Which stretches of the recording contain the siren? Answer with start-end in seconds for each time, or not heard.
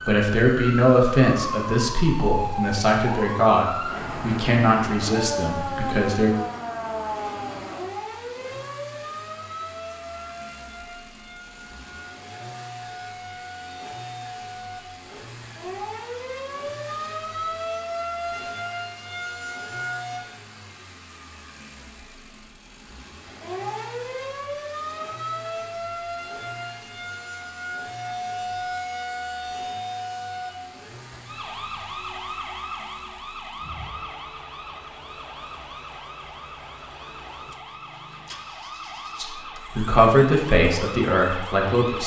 0.0-20.2, 23.2-42.0.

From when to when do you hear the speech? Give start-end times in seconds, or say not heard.
0.1-6.3, 39.1-42.0.